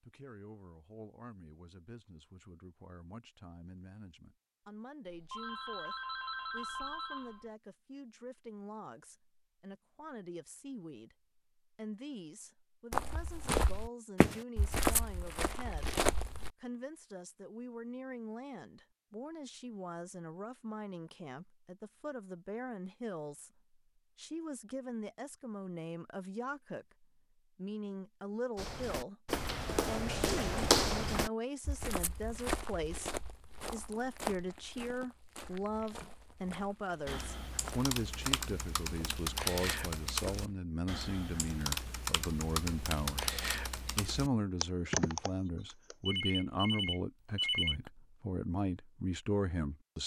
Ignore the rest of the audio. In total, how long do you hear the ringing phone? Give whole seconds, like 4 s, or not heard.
4 s.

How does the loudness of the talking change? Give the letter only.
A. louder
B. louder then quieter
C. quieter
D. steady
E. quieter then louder
A.